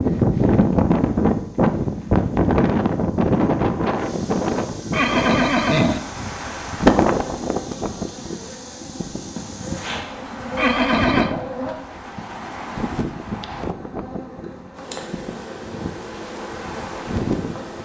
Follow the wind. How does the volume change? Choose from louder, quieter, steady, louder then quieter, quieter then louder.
quieter.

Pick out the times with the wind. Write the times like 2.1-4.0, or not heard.
0.0-17.8.